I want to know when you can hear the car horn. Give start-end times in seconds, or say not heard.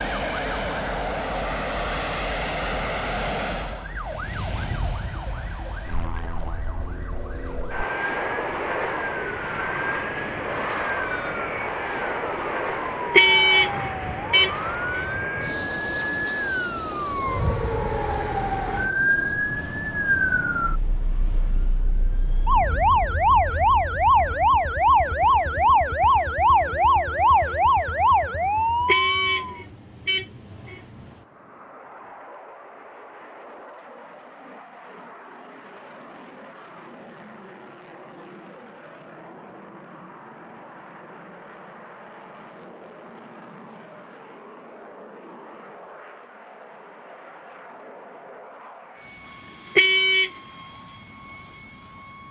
13.1-15.1, 28.9-30.8, 49.8-50.3.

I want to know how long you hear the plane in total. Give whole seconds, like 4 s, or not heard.
52 s.